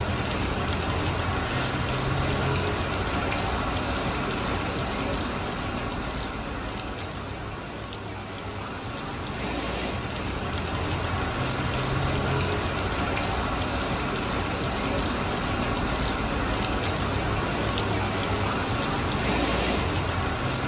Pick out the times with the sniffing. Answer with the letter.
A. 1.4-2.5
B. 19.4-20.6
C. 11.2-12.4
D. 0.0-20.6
A.